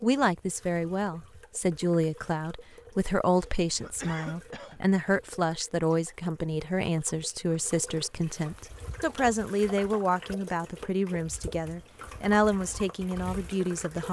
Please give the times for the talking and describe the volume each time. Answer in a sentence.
The talking can be heard from 0.0 to 14.0 s, at a steady volume.